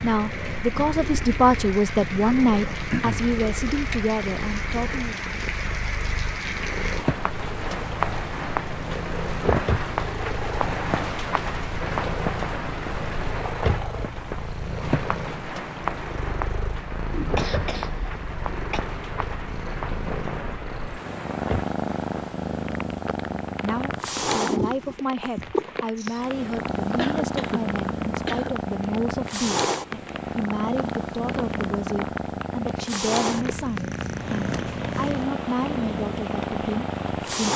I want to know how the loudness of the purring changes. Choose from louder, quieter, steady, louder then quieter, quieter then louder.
louder.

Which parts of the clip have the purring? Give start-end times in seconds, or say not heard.
0.0-37.5.